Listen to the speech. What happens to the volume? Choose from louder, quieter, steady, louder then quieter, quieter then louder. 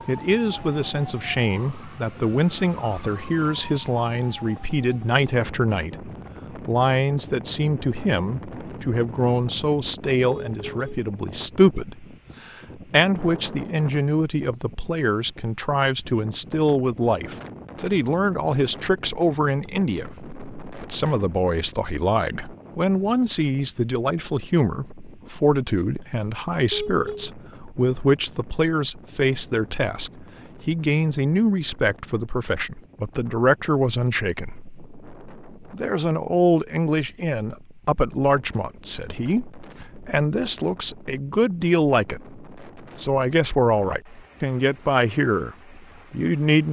steady.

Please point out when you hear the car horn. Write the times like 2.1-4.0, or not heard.
10.2-11.0, 26.7-27.3.